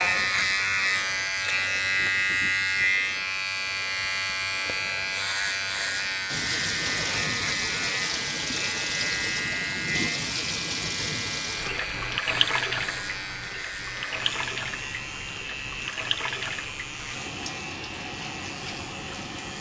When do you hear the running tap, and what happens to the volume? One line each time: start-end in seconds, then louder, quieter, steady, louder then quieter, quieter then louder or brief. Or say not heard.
6.2-19.5 quieter.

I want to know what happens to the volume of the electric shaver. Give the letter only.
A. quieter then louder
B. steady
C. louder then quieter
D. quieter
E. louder
D.